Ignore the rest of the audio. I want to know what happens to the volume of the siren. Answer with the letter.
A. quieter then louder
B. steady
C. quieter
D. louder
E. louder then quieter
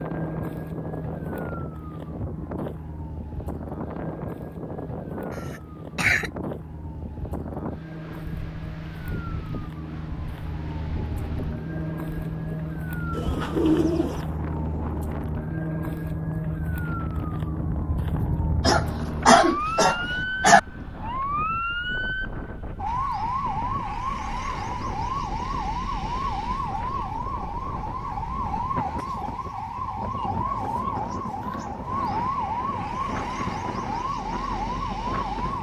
D.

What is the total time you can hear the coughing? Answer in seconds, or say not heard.
3 s.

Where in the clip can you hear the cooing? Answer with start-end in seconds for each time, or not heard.
13.1-14.2.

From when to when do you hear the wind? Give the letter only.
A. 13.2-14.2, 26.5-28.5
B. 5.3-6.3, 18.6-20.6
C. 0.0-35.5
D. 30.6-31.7
C.